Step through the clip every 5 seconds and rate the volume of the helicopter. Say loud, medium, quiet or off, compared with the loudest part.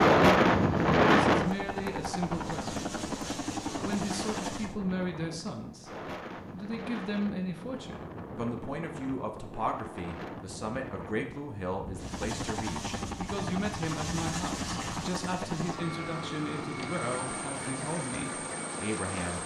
loud, off, loud, loud.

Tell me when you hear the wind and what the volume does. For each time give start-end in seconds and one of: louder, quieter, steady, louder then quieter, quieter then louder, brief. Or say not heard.
0.0-15.0 quieter.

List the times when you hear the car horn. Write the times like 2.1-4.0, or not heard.
not heard.